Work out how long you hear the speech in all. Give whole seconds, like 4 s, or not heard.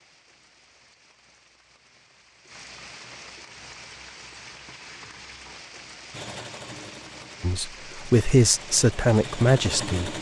3 s.